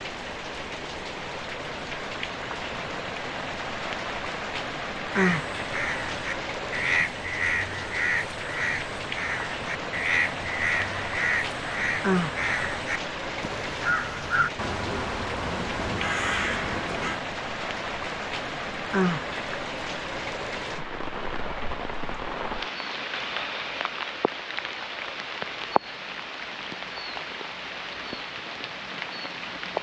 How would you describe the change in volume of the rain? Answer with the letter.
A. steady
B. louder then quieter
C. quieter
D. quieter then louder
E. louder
A.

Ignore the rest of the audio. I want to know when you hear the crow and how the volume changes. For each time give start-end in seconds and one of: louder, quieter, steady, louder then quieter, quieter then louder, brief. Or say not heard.
5.1-17.2 steady.